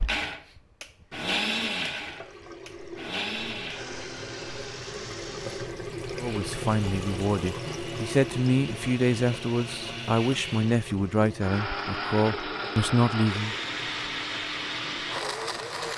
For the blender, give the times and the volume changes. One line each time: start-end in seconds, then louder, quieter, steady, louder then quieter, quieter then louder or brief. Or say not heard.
0.0-15.9 quieter then louder.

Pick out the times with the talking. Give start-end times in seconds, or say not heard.
6.2-13.6.